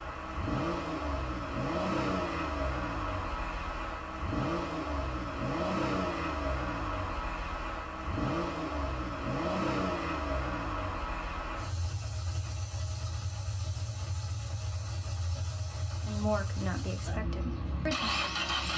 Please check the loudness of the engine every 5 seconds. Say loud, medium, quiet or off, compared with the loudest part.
loud, loud, medium, loud.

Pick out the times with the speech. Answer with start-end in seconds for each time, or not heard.
16.1-18.5.